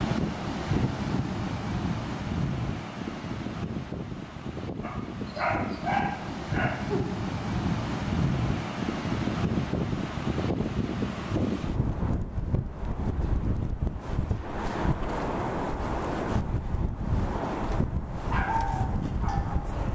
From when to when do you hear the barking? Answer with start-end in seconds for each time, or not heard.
4.8-7.2, 18.3-19.8.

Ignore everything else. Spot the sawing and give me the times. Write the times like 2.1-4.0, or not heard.
not heard.